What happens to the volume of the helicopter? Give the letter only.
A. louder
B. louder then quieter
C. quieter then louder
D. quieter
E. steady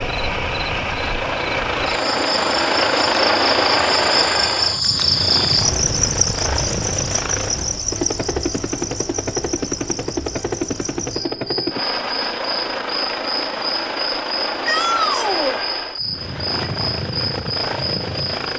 D.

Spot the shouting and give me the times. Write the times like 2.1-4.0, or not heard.
14.7-15.6.